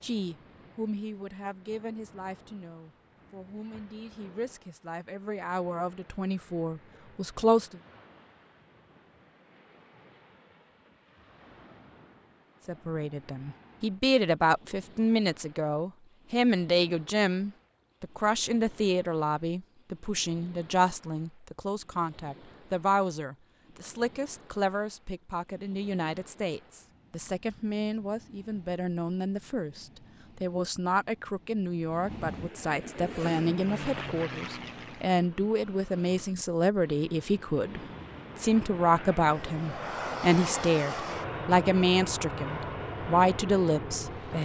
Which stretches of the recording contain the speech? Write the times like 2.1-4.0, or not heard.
0.0-7.8, 12.7-44.3.